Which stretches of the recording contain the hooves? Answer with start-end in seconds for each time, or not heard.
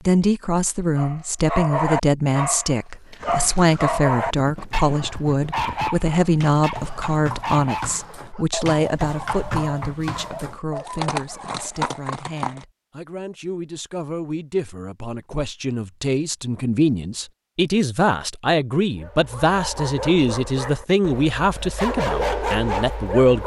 3.2-12.7.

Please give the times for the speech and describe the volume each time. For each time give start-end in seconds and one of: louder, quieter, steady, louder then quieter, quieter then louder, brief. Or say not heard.
0.1-23.4 quieter then louder.